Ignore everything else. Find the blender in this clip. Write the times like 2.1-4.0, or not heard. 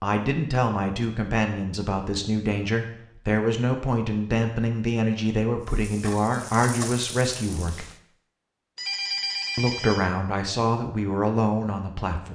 not heard.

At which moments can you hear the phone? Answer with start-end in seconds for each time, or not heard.
8.8-10.1.